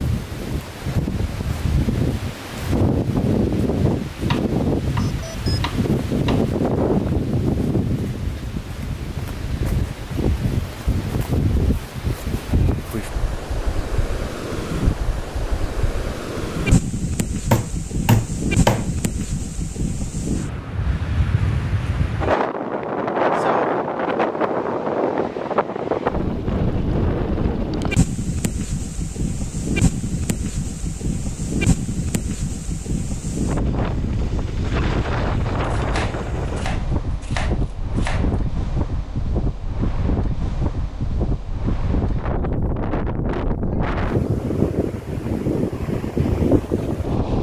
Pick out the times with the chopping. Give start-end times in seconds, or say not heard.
4.3-6.5, 17.5-18.9, 35.6-38.4.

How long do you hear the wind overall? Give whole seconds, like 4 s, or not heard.
47 s.